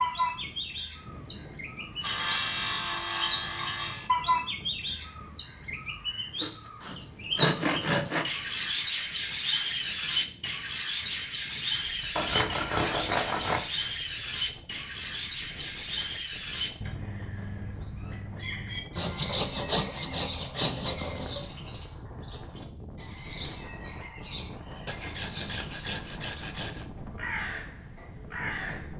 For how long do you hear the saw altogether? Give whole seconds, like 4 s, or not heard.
10 s.